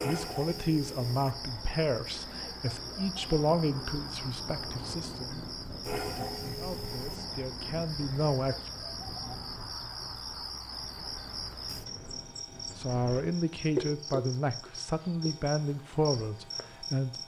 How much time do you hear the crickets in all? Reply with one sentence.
You can hear the crickets for 17 seconds altogether.